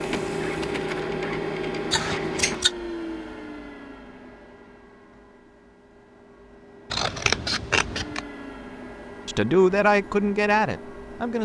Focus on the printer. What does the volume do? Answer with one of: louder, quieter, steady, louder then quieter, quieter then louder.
quieter then louder.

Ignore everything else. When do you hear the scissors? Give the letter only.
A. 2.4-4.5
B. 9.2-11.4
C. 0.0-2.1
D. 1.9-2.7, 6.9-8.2
D.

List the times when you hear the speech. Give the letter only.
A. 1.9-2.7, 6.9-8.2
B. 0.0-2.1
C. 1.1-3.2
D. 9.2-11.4
D.